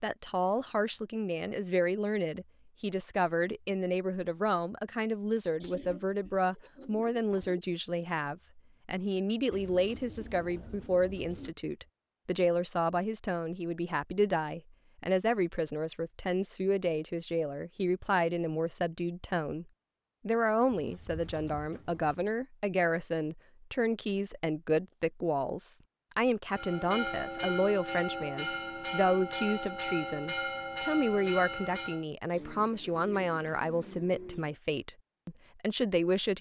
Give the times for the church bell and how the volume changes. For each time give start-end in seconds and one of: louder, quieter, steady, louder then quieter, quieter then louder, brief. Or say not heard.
26.5-32.0 steady.